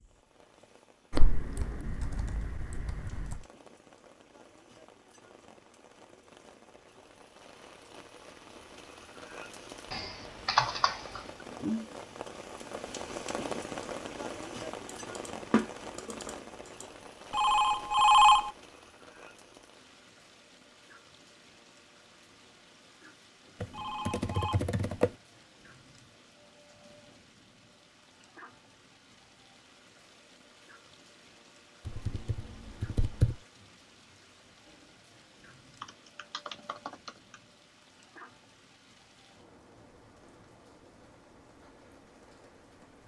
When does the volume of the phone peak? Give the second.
18 s.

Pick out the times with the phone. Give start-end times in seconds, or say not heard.
17.3-18.5, 23.7-24.6.